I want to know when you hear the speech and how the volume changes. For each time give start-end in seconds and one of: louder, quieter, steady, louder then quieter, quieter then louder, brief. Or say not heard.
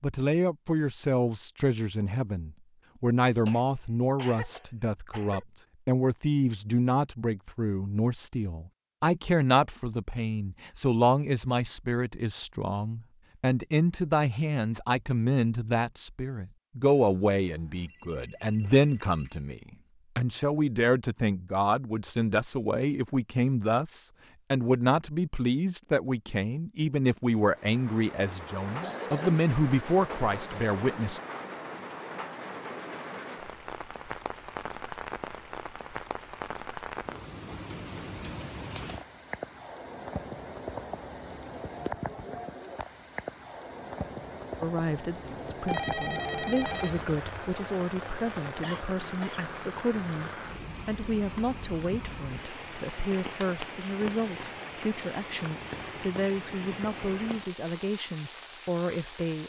0.0-31.2 steady
44.6-59.4 steady.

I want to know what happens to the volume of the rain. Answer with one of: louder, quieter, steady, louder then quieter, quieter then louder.
steady.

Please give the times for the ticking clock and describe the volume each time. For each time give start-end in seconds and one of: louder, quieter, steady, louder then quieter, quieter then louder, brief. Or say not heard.
not heard.